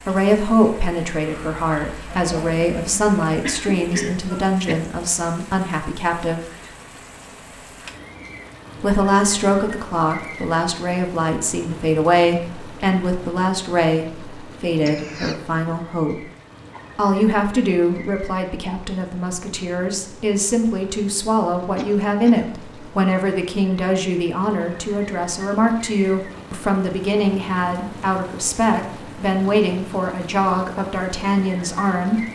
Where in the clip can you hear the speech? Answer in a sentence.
The speech can be heard from 0.1 to 6.5 s, from 8.8 to 16.3 s and from 16.9 to 32.2 s.